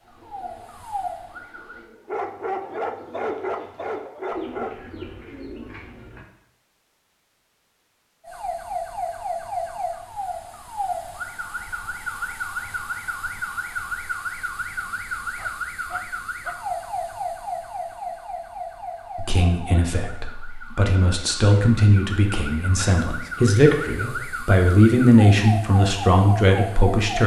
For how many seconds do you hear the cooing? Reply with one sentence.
The cooing can be heard for 6 seconds in total.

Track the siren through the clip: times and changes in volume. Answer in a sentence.
You can hear the siren briefly from 0.0 to 1.9 s; and from 8.2 to 27.2 s, getting quieter then louder.